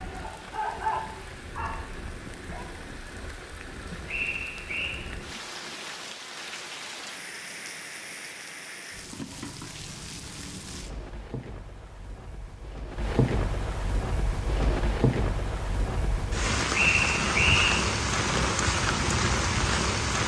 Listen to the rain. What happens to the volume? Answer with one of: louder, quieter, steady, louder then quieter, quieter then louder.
louder.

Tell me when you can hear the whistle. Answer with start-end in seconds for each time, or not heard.
4.0-5.0, 16.7-17.8.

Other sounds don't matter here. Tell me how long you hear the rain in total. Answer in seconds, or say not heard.
20 s.